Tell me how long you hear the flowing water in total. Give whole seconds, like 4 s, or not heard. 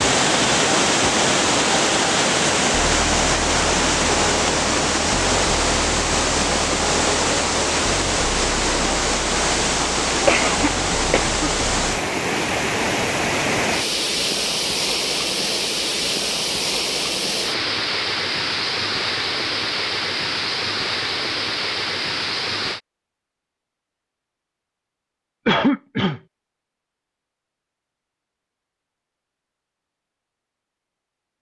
23 s.